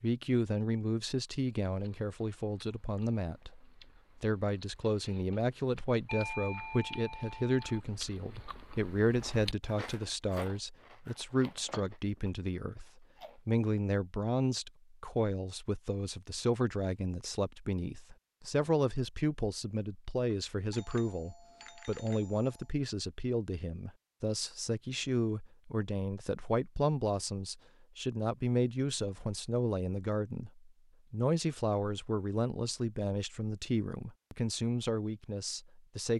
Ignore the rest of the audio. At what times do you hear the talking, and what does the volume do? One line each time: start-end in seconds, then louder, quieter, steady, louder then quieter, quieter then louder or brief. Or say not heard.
0.0-36.1 steady.